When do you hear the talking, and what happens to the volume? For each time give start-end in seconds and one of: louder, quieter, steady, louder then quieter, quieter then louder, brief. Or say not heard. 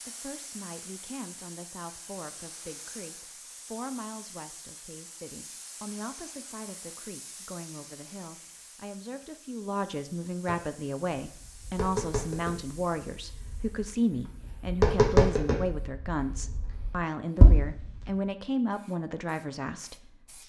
0.1-20.4 louder.